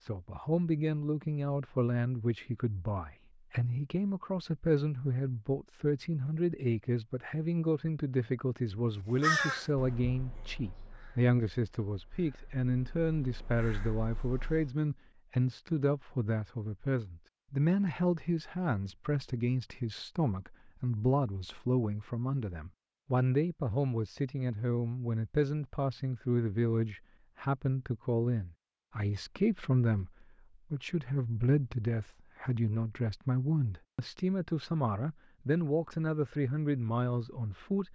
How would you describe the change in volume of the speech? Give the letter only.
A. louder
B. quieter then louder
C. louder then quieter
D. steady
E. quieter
D.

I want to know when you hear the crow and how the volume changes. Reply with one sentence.
You can hear the crow from 9.2 to 14.8 s, getting quieter then louder.